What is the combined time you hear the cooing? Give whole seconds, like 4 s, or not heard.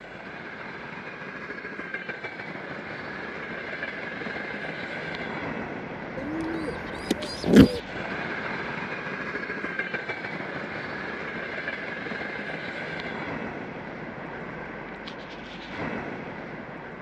2 s.